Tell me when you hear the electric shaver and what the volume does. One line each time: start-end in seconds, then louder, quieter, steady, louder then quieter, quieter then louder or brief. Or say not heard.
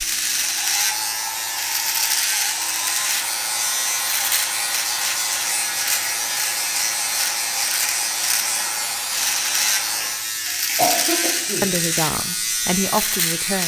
0.0-13.6 steady.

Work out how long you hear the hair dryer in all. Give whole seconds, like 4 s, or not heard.
10 s.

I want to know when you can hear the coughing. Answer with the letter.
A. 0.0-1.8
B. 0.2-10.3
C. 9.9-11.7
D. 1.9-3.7
C.